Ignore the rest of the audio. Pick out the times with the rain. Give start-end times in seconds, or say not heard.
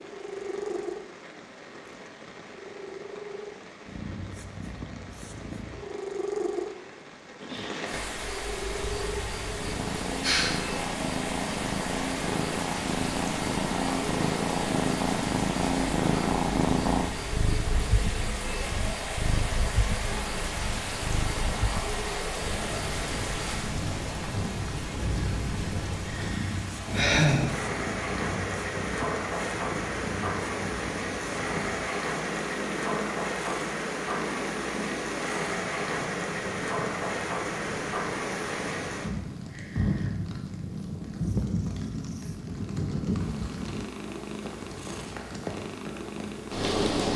0.0-47.1.